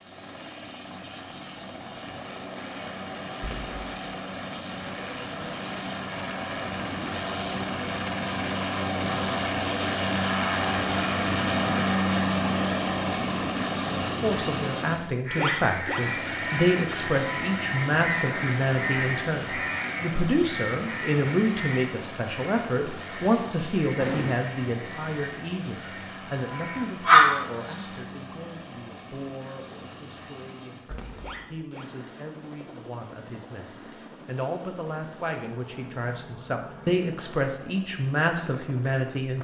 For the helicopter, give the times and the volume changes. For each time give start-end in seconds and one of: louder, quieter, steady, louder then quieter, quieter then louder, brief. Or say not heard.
0.0-39.3 louder then quieter.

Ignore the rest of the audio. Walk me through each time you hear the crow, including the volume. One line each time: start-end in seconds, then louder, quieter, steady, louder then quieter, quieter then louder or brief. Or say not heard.
15.2-27.0 quieter.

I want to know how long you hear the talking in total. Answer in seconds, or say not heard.
25 s.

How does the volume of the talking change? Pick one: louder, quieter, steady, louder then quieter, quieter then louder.
quieter then louder.